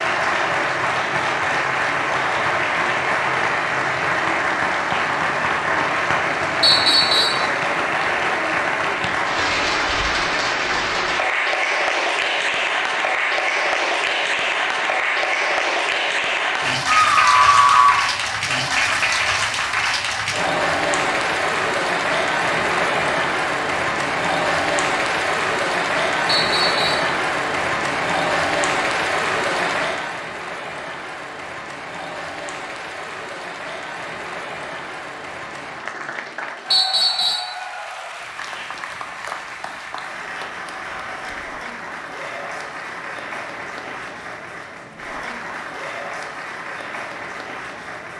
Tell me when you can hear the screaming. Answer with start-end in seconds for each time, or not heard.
16.9-18.1.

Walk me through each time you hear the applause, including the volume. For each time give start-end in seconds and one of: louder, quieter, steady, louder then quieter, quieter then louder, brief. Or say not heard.
0.0-48.1 quieter.